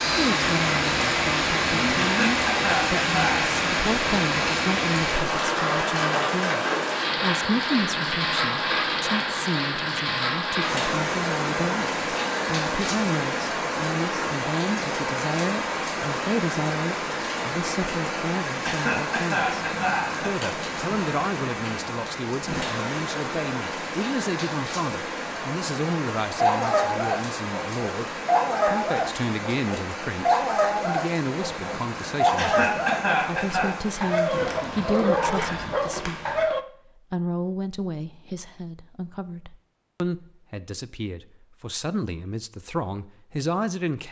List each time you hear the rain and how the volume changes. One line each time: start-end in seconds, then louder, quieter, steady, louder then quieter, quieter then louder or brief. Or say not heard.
0.0-36.5 quieter.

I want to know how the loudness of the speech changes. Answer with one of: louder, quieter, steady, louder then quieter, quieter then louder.
steady.